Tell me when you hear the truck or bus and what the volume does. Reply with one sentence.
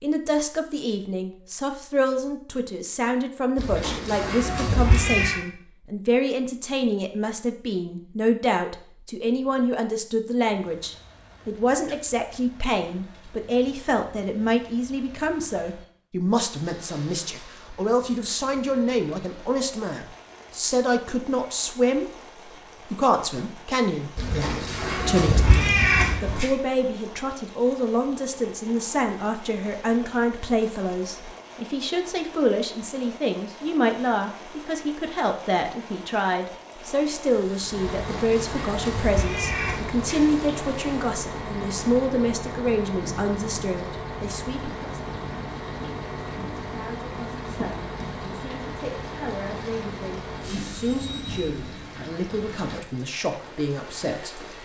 You can hear the truck or bus from 37.5 to 51.8 s, at a steady volume.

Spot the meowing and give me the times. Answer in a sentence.
You can hear the meowing from 3.5 to 5.4 s, from 24.1 to 26.5 s and from 37.9 to 40.5 s.